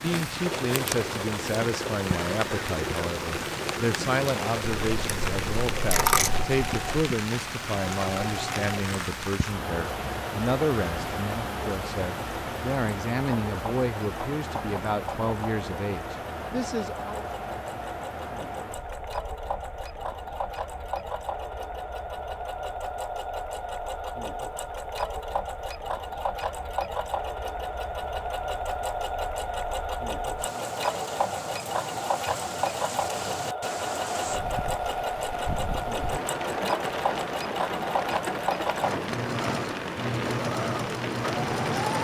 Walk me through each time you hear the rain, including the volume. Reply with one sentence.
The rain can be heard from 0.0 to 41.9 s, getting quieter then louder.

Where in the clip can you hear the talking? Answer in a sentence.
The talking can be heard from 0.0 to 17.2 s.